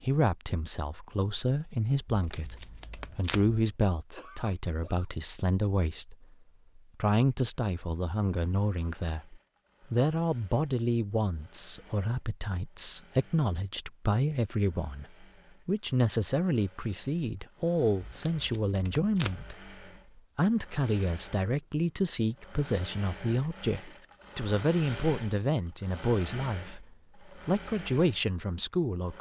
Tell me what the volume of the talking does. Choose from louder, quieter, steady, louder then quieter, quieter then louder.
steady.